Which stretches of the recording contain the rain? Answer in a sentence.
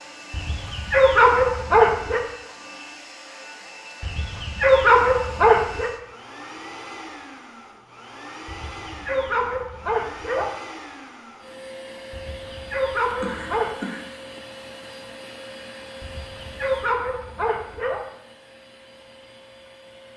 The rain can't be heard in this clip.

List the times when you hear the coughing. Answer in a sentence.
The coughing can be heard from 13.2 to 14.0 s.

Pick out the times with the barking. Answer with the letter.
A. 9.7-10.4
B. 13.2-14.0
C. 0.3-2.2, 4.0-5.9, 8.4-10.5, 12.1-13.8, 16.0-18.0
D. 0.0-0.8
C.